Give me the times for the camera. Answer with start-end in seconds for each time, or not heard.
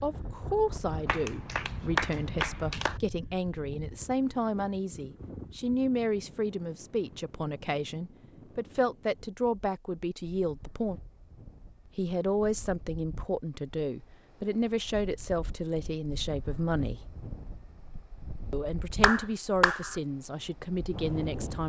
not heard.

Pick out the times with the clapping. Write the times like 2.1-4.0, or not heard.
1.1-3.0, 19.0-19.9.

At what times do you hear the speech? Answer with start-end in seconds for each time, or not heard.
0.0-11.0, 11.9-17.1, 18.5-21.6.